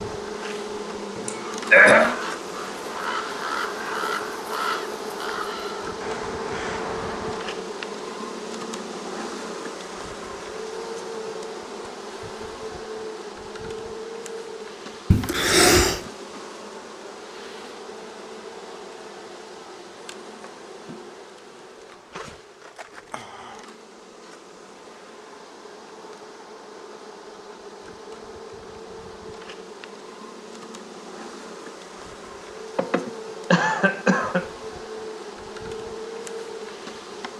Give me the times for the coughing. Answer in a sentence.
The coughing can be heard from 1.1 to 2.1 s, from 15.1 to 16.0 s and from 32.8 to 34.5 s.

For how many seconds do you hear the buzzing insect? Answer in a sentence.
The buzzing insect can be heard for 37 seconds in total.